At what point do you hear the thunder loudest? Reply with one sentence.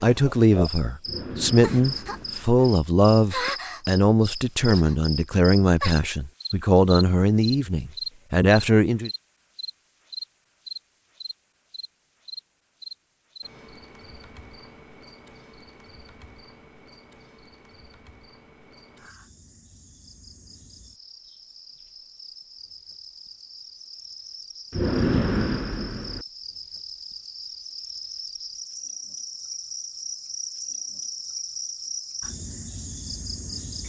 The volume of the thunder peaks at 25 seconds.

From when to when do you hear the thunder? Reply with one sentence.
The thunder can be heard from 1.1 to 2.5 s and from 24.7 to 26.2 s.